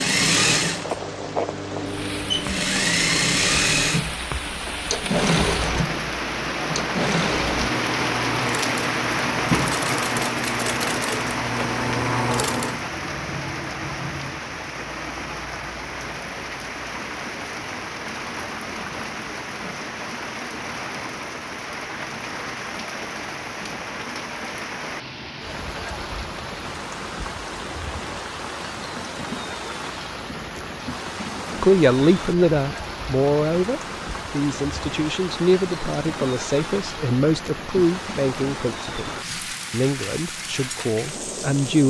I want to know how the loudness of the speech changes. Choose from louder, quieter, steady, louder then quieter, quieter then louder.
quieter.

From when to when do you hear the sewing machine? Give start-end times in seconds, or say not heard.
0.0-12.8.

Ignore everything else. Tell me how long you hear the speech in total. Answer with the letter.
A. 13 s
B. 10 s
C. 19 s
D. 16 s
B.